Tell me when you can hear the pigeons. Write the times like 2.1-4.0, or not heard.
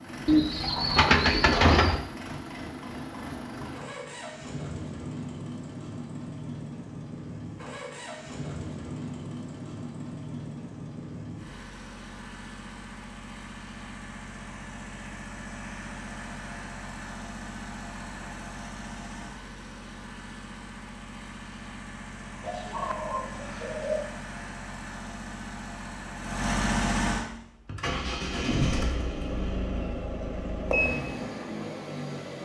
0.2-2.0, 22.4-24.1.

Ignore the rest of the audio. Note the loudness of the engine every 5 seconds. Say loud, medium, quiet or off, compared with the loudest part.
medium, medium, medium, medium, medium, loud, loud.